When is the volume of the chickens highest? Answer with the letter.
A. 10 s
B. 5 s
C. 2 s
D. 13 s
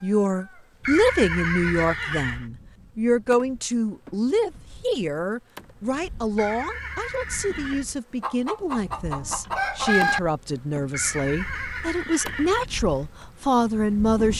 A.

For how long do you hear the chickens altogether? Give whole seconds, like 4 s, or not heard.
2 s.